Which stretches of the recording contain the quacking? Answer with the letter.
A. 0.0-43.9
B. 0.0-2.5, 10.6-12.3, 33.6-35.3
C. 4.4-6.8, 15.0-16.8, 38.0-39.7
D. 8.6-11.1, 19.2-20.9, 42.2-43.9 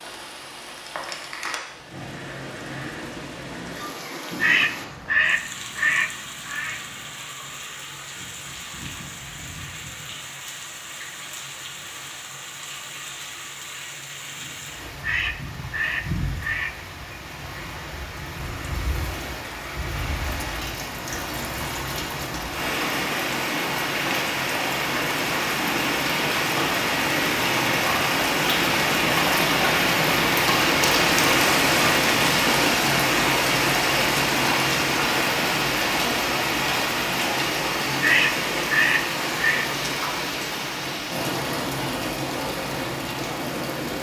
C.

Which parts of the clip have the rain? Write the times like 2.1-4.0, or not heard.
0.0-43.9.